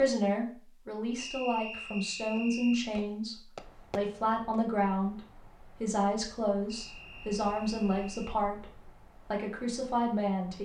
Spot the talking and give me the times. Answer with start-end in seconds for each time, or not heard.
0.0-10.5.